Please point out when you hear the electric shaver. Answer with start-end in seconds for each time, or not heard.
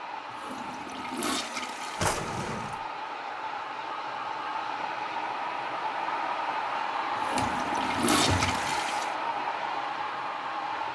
not heard.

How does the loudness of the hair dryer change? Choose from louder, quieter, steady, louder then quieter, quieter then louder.
louder.